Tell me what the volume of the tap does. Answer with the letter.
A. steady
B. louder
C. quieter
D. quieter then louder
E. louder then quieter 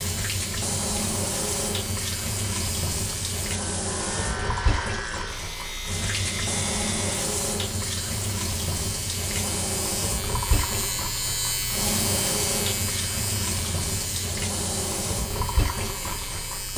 A.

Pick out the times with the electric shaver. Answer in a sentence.
The electric shaver can be heard from 0.0 to 16.7 s.